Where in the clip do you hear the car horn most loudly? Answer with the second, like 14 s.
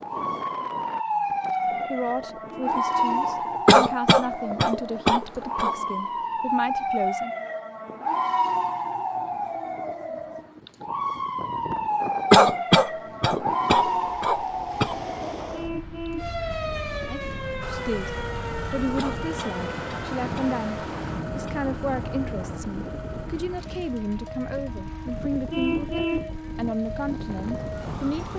26 s.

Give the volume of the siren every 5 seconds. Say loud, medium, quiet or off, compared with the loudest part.
loud, loud, loud, medium, quiet, medium.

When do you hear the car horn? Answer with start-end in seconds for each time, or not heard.
2.5-3.3, 15.5-16.4, 25.5-26.3.